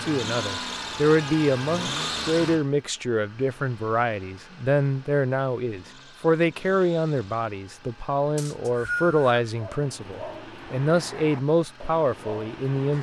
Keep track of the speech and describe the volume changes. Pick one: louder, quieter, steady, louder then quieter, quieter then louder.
steady.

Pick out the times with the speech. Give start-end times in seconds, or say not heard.
0.0-12.9.